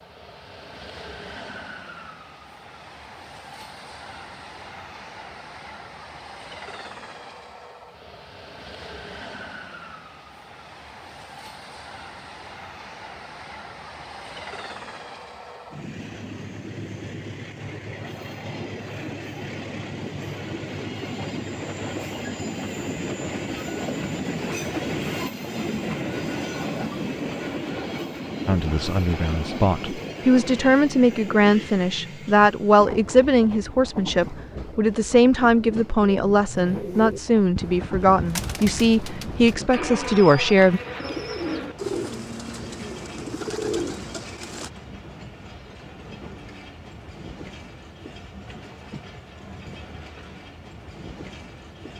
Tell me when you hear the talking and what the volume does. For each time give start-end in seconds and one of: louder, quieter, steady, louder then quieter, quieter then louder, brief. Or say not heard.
28.4-40.8 steady.